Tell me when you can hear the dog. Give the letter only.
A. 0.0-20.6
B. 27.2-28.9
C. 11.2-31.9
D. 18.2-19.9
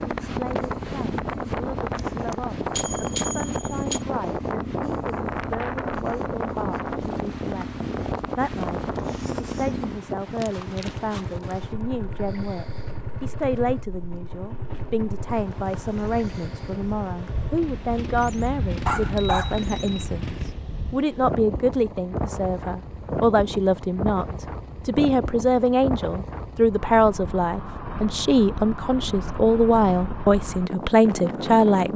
D.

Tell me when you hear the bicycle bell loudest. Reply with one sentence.
The volume of the bicycle bell peaks at 3 seconds.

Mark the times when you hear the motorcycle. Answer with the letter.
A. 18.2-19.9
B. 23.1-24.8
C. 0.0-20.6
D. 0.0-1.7
C.